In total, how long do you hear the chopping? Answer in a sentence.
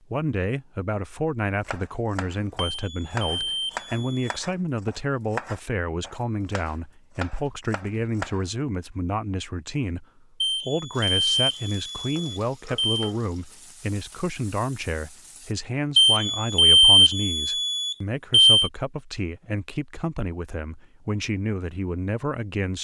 You can hear the chopping for 7 seconds altogether.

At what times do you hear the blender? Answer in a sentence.
You can't hear the blender here.